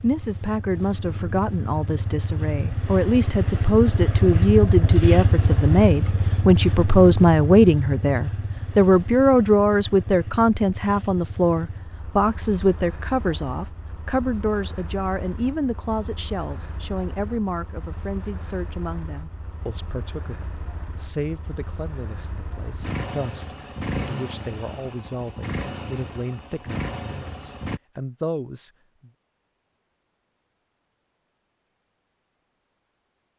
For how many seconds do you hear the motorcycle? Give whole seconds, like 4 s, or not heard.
28 s.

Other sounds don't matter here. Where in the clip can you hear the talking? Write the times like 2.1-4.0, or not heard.
0.0-29.1.